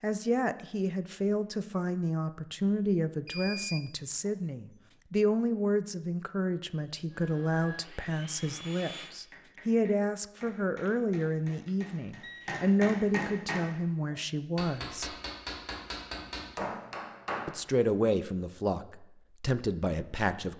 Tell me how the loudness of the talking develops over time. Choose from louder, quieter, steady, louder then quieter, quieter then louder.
steady.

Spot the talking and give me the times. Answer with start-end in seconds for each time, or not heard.
0.0-15.2, 17.4-20.5.